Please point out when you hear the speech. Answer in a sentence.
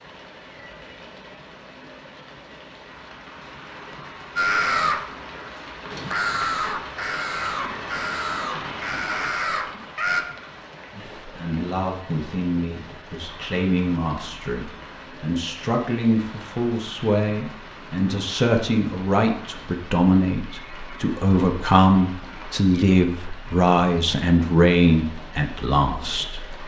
The speech can be heard from 10.9 to 26.6 s.